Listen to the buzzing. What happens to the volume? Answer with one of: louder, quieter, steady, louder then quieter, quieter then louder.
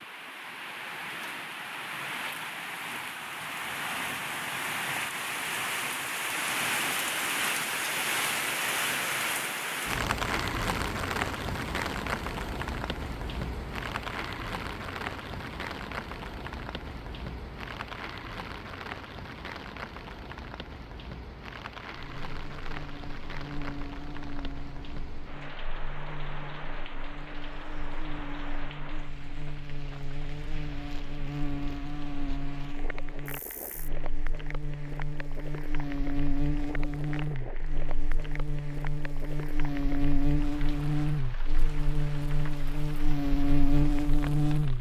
louder.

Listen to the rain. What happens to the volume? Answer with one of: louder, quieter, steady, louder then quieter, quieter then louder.
quieter.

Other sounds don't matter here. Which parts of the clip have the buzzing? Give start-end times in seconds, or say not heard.
21.9-44.7.